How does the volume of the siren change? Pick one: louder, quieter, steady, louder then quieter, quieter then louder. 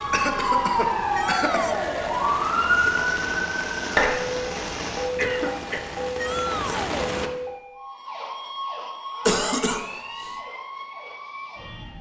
quieter.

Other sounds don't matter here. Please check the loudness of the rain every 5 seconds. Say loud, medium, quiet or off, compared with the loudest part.
loud, loud, off.